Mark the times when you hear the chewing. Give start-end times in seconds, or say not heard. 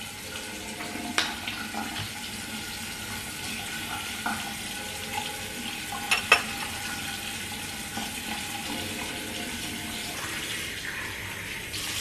not heard.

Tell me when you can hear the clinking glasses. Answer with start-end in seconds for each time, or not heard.
6.1-6.7.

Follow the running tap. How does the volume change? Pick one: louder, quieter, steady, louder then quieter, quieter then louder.
steady.